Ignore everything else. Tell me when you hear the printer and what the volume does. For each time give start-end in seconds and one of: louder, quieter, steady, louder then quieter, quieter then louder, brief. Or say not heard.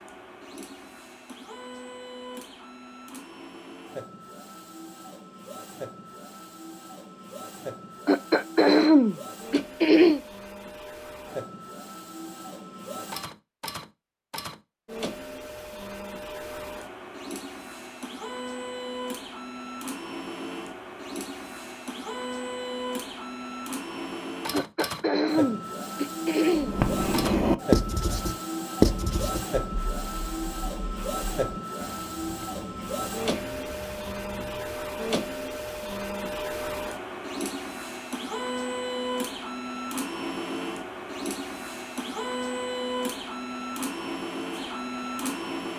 0.0-45.7 louder.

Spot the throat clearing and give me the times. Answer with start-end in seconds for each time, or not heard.
8.1-10.2, 24.5-26.9.